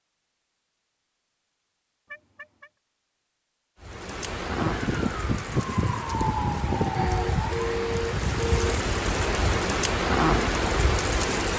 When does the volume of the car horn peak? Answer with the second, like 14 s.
8 s.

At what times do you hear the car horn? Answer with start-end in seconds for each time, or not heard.
2.0-2.7, 7.0-8.8.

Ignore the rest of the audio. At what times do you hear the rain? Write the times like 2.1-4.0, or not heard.
3.8-11.5.